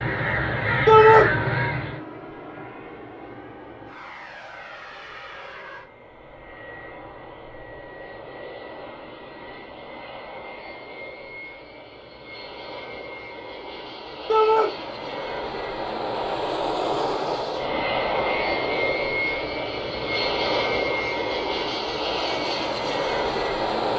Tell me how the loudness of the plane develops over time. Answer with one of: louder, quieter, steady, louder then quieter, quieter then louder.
louder.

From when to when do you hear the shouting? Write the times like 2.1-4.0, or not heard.
0.8-1.2, 14.2-14.7.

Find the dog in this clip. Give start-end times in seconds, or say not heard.
not heard.